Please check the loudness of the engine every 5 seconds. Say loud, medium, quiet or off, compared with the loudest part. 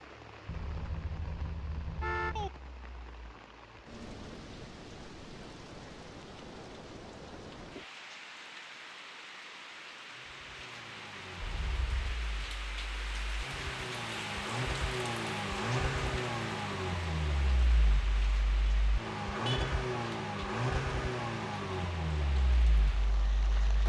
off, off, medium, loud, loud.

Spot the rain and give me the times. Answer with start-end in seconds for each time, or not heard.
0.0-23.8.